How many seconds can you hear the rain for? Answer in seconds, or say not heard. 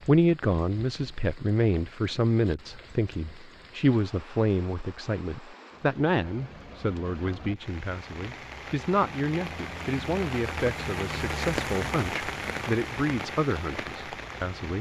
15 s.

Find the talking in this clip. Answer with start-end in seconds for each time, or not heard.
0.1-14.7.